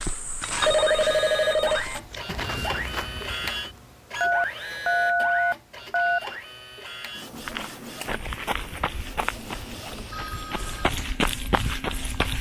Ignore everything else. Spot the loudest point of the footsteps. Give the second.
11 s.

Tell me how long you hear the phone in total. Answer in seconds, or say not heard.
5 s.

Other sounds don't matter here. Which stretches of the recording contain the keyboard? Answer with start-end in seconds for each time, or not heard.
not heard.